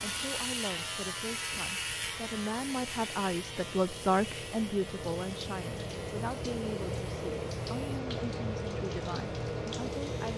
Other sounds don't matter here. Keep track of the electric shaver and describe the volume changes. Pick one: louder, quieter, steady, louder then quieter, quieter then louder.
quieter.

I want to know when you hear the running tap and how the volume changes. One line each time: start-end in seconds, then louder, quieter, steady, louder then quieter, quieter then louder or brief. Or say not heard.
0.0-10.3 louder.